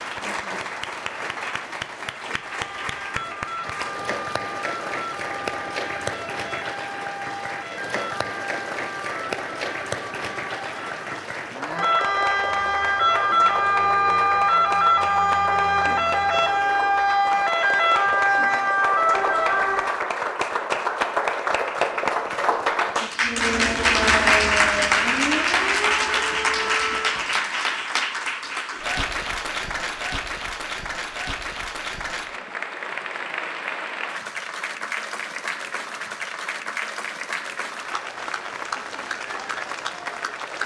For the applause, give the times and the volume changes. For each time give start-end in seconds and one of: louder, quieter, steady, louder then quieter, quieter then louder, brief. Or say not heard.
0.0-40.6 louder then quieter.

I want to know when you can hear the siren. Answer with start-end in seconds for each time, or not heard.
2.5-20.1, 23.2-27.2.